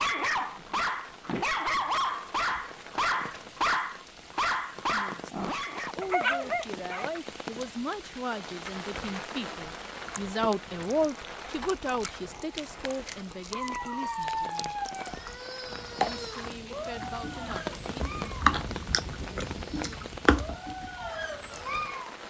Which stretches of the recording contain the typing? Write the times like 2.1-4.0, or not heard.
not heard.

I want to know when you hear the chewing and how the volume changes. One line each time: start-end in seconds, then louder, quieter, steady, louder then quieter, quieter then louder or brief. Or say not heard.
10.0-21.8 louder.